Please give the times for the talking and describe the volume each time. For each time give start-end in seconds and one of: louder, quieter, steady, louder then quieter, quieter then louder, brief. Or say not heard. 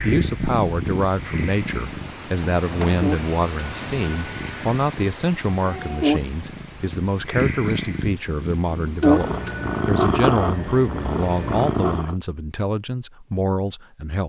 0.0-14.2 steady.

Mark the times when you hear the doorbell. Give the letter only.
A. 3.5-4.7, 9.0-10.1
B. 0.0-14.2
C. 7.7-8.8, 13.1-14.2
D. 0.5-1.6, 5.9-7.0
A.